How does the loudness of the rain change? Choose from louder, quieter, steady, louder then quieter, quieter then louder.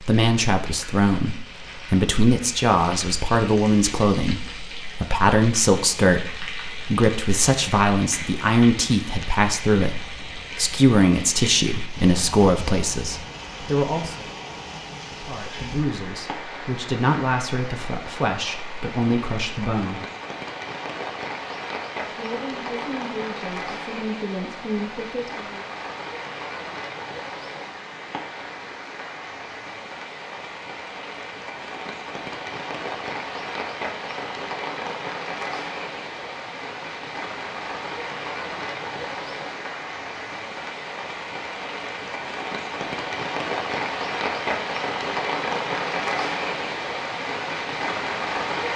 louder.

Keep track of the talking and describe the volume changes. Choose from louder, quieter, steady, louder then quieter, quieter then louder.
quieter.